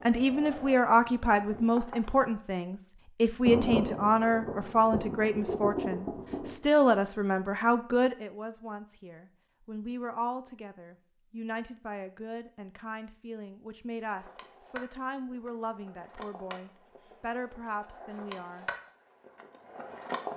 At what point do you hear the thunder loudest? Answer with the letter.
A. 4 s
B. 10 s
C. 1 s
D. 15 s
A.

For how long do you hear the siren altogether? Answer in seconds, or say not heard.
not heard.